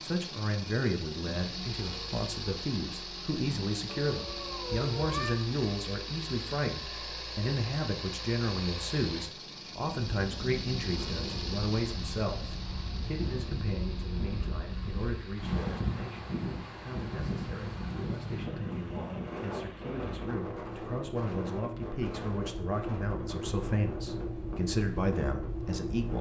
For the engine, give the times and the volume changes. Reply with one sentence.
You can hear the engine from 0.0 to 26.1 s, getting quieter then louder.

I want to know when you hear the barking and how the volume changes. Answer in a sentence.
The barking can't be heard in this clip.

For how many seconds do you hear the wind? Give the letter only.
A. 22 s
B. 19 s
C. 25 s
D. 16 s
D.